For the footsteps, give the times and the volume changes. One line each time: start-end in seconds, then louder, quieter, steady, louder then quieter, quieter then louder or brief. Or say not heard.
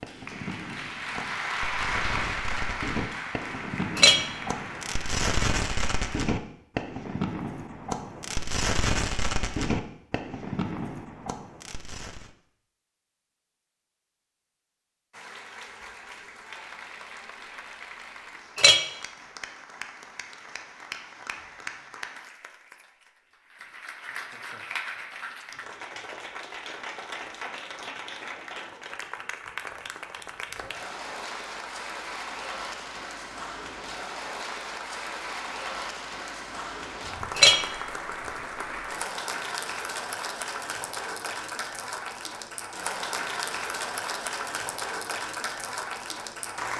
not heard.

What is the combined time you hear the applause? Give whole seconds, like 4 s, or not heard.
38 s.